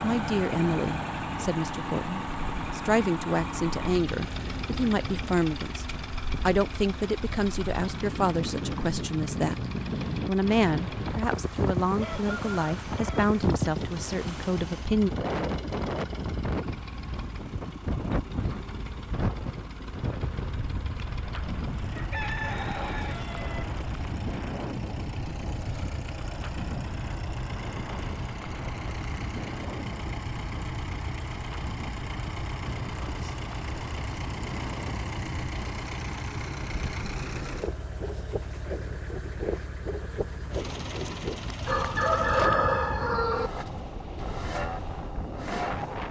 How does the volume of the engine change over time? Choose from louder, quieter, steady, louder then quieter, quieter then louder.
quieter then louder.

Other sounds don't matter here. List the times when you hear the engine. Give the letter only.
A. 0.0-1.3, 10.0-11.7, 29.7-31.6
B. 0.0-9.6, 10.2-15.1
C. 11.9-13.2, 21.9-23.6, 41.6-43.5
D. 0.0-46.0
D.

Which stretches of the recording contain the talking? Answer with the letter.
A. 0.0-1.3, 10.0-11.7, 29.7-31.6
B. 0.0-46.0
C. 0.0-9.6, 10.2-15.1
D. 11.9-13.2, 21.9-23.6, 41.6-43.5
C.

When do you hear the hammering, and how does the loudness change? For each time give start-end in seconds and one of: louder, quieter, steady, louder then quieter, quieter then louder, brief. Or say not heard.
not heard.